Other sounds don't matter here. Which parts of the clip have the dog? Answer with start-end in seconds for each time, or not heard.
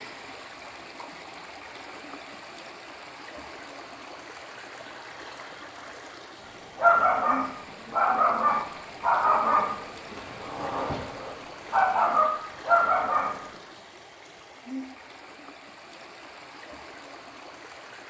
6.8-13.4.